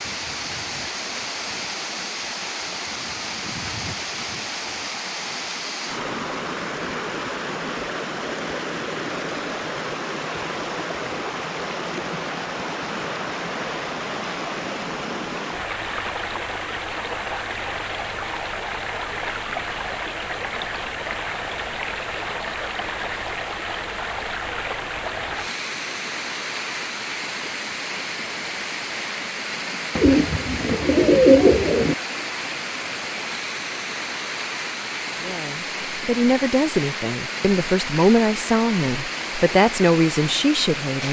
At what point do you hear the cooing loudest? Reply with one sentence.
The loudest moment of the cooing is at 31 seconds.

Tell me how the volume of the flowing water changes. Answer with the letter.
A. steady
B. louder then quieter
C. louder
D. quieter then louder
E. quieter
A.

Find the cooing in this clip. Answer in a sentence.
The cooing can be heard from 29.9 to 31.9 s.